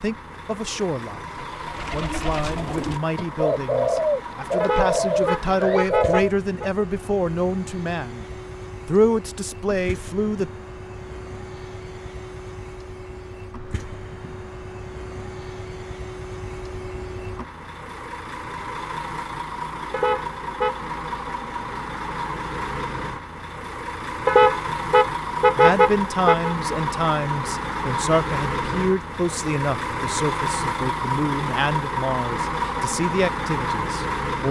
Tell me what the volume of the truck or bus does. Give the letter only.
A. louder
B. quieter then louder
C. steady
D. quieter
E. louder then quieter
A.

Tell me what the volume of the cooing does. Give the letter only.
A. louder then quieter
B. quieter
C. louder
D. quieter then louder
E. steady
C.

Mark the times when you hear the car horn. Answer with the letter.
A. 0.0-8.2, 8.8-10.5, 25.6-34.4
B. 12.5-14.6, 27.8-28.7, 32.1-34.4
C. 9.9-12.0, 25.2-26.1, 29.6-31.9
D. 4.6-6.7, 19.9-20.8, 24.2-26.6
D.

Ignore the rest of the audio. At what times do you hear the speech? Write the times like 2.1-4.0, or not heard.
0.0-8.2, 8.8-10.5, 25.6-34.4.